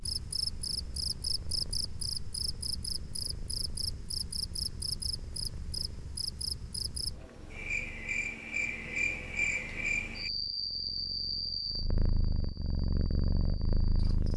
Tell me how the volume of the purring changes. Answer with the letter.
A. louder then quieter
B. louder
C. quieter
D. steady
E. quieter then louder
B.